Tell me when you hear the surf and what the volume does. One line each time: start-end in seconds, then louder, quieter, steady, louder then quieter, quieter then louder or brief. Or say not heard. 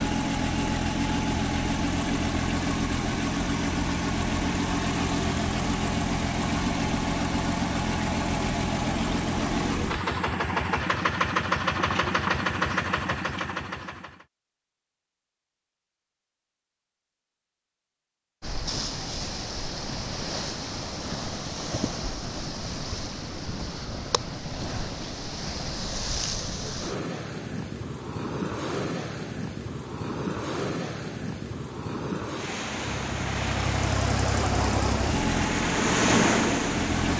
18.4-37.1 louder.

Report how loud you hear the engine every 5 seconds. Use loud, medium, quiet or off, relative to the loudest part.
loud, loud, loud, off, off, off, loud, loud.